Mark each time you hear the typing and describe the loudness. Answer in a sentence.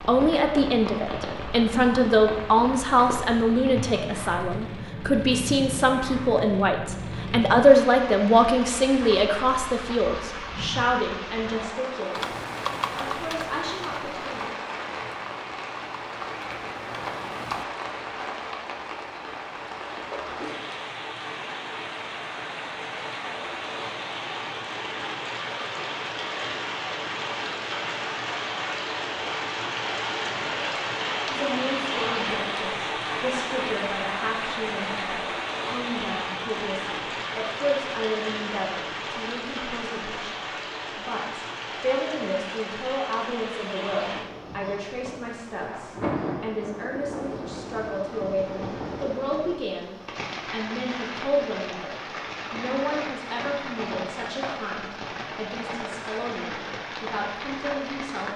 You can hear the typing from 12.2 to 17.6 s, getting quieter.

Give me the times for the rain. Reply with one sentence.
You can hear the rain from 0.0 to 58.3 s.